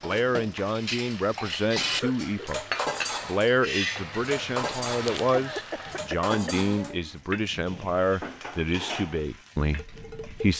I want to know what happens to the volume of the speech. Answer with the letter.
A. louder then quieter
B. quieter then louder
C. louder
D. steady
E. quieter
D.